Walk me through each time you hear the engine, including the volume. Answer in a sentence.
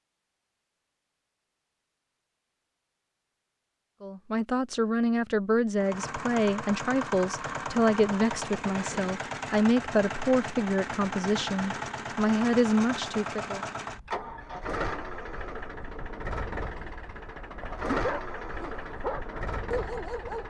You can hear the engine from 5.8 to 20.4 s, at a steady volume.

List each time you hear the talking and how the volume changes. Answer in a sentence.
You can hear the talking from 4.0 to 13.6 s, at a steady volume.